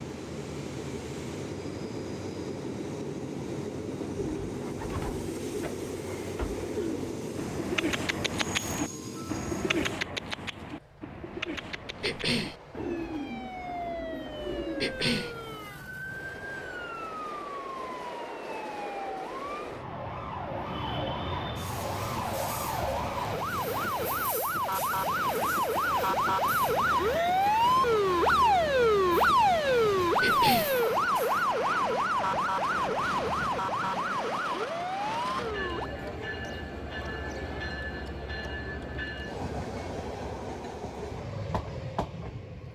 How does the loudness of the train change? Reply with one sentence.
The loudness of the train goes down, then up.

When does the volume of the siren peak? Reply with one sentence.
The volume of the siren peaks at 29 seconds.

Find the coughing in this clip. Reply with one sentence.
You can hear the coughing from 12.0 to 12.6 s, from 14.8 to 15.3 s and from 30.2 to 30.8 s.